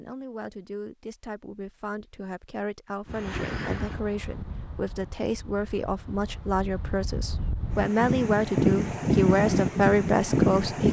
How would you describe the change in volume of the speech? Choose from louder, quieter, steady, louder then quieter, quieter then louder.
louder.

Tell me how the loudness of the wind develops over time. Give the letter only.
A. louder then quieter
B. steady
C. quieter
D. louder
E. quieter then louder
E.